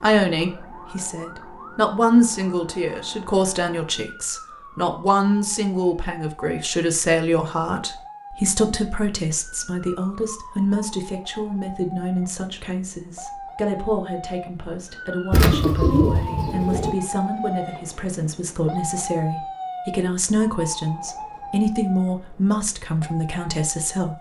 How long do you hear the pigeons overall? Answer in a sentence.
You can hear the pigeons for 2 seconds altogether.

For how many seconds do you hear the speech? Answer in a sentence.
You can hear the speech for 24 seconds altogether.